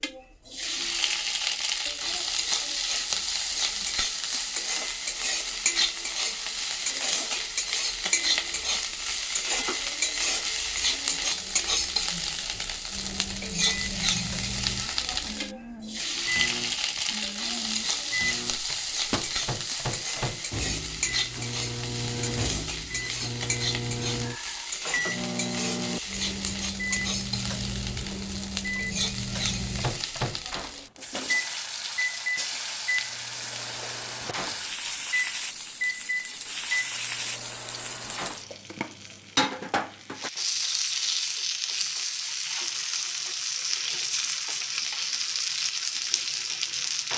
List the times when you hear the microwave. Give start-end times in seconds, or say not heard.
12.9-38.5.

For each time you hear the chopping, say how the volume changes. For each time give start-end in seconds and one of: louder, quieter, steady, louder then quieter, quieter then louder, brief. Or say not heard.
not heard.